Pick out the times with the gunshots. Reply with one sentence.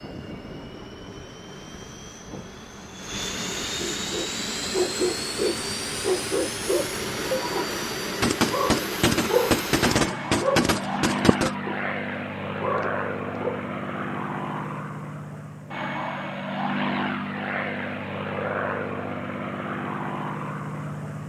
You can hear the gunshots from 8.2 to 11.6 s.